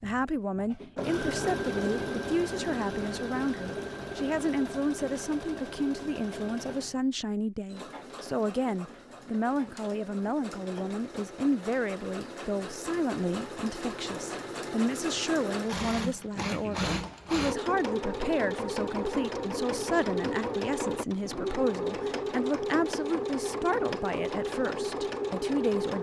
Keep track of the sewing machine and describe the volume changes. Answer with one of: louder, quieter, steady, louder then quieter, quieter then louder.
quieter then louder.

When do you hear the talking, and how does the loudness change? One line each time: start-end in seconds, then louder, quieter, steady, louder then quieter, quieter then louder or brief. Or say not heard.
0.0-25.9 steady.